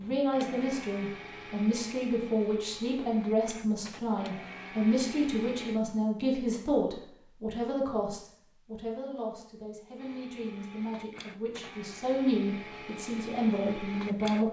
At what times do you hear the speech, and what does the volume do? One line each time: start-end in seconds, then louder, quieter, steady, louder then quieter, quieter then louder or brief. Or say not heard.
0.0-14.4 quieter then louder.